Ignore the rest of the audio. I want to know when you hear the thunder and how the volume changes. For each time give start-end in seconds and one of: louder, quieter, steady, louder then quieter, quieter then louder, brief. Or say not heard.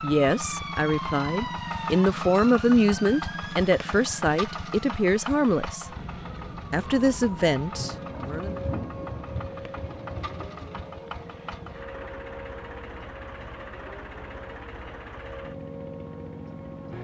7.7-11.8 quieter.